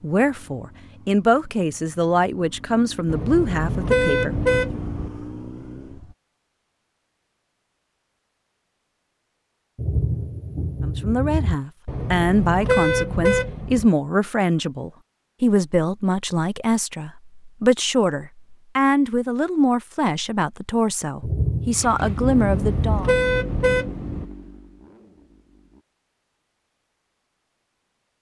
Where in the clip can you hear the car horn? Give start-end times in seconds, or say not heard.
3.0-5.1, 11.8-13.9, 22.2-24.2.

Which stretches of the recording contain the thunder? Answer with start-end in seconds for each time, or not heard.
9.8-11.6, 21.2-22.9.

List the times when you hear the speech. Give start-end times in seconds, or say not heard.
0.0-4.8, 10.8-23.1.